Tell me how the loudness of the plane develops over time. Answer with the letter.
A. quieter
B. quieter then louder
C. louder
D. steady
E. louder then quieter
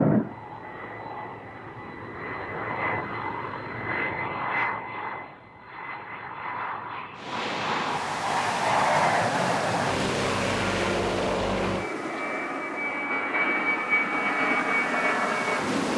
C.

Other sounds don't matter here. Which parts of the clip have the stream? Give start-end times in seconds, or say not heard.
7.2-15.9.